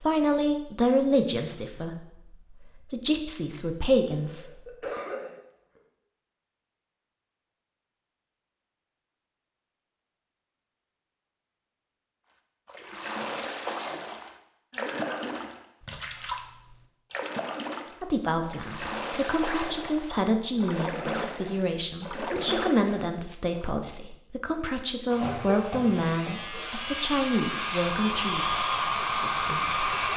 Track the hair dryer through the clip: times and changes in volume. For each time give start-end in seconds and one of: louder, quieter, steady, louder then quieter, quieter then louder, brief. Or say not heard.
25.1-30.1 louder.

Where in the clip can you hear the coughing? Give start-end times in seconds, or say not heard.
4.2-5.8, 14.7-15.6, 25.2-26.7.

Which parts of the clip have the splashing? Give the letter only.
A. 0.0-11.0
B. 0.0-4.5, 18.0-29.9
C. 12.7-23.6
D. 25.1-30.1
C.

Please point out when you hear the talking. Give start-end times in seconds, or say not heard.
0.0-4.5, 18.0-29.9.